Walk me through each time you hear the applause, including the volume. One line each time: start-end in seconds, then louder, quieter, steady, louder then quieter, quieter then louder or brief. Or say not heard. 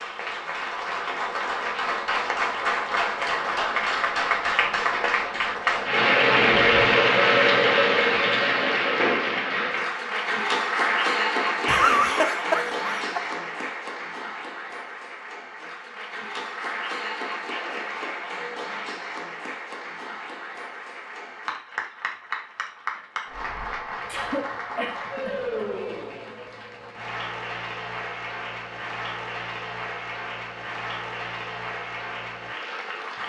0.0-33.2 quieter.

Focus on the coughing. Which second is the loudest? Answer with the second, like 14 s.
12 s.